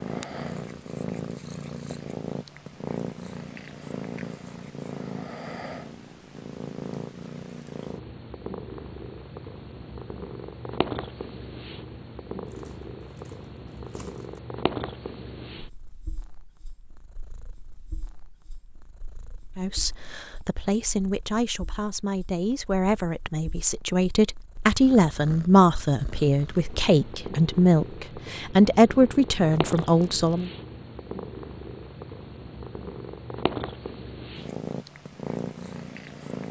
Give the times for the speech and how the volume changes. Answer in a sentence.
The speech can be heard from 19.6 to 30.5 s, getting louder.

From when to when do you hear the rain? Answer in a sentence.
The rain can't be heard in this clip.